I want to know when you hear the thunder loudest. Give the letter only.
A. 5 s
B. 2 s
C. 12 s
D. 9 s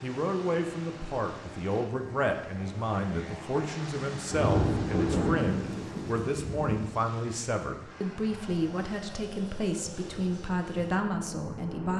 A.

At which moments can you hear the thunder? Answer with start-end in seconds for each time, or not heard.
4.3-6.9.